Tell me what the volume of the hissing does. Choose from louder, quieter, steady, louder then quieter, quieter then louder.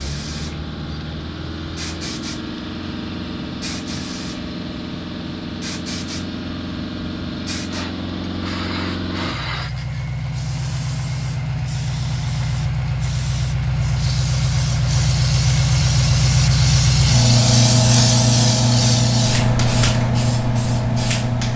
louder.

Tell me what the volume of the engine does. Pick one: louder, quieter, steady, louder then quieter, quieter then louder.
louder.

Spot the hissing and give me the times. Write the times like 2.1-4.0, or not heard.
0.0-21.5.